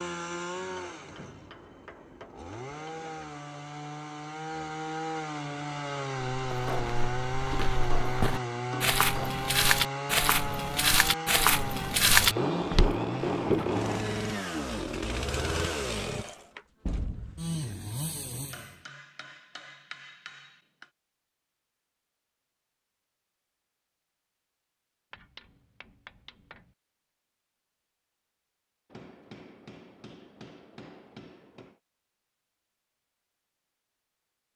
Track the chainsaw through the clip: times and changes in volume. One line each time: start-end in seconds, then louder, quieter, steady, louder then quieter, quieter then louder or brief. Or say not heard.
0.0-18.9 louder.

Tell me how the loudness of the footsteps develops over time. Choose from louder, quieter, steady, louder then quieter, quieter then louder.
louder.